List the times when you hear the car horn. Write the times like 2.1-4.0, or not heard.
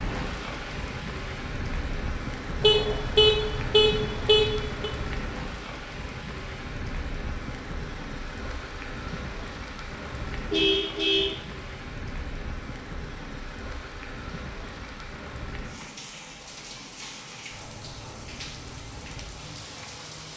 2.6-4.9, 10.5-11.3.